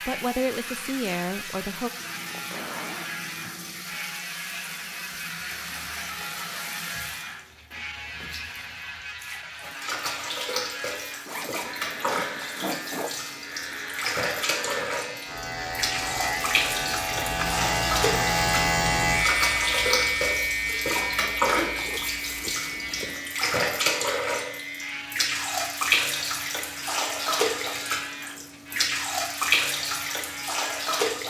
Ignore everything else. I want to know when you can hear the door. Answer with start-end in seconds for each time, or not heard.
not heard.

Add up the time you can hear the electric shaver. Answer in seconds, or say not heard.
31 s.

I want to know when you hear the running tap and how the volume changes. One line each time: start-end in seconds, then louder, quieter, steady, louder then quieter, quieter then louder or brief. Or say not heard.
0.0-31.2 louder.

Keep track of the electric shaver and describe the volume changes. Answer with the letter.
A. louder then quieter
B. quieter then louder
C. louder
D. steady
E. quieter
A.